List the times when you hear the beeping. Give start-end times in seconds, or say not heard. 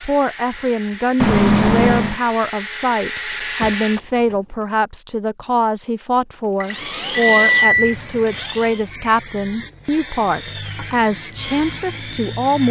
1.2-2.1, 6.6-8.0.